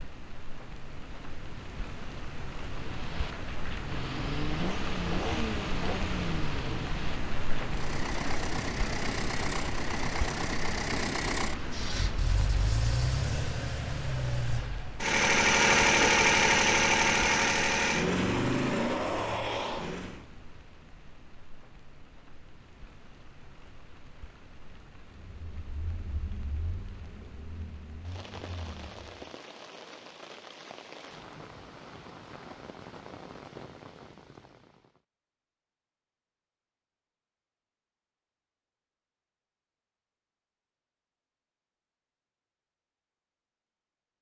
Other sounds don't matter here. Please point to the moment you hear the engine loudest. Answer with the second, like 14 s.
16 s.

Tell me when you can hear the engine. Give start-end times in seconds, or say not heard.
2.6-20.2, 25.1-29.2.